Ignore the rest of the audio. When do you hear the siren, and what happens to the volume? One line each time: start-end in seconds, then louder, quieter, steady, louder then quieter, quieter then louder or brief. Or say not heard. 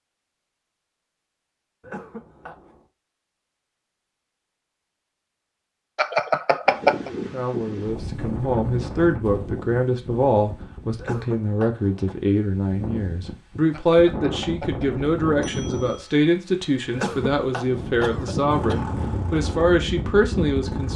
not heard.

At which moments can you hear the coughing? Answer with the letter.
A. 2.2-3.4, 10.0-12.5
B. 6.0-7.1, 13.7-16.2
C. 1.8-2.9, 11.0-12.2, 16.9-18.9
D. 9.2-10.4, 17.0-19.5
C.